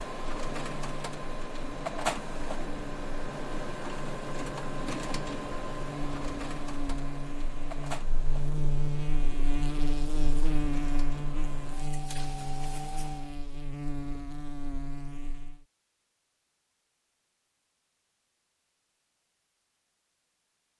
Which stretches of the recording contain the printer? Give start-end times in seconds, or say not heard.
0.0-13.3.